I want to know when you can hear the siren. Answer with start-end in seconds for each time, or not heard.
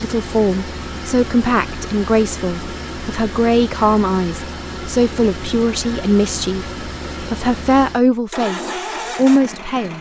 not heard.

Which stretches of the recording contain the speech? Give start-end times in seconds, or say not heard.
0.0-9.9.